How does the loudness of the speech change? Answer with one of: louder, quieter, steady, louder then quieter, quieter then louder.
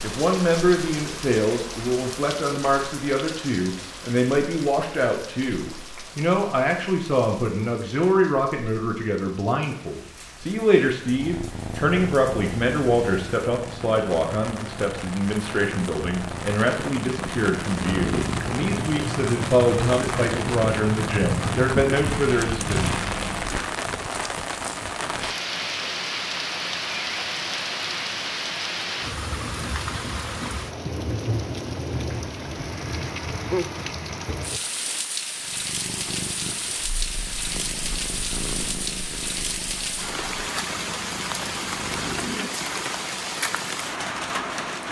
steady.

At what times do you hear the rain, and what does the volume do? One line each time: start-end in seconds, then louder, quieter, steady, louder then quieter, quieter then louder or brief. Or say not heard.
0.0-44.8 louder.